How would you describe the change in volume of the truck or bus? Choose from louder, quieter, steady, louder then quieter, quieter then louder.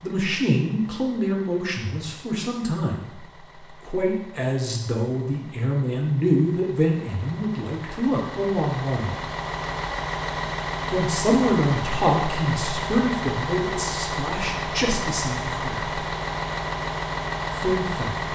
louder.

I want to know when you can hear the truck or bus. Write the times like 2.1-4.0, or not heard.
0.0-18.2.